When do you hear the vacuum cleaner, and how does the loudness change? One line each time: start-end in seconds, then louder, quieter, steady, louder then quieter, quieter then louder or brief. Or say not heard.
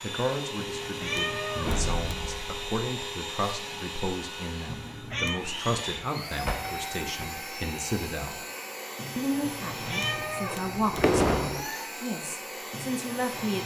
0.0-13.6 steady.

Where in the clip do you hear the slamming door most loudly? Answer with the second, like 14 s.
11 s.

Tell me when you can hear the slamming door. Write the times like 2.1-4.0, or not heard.
1.6-2.6, 6.5-7.3, 10.2-11.7.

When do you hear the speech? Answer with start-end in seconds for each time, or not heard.
0.0-8.4, 9.2-13.6.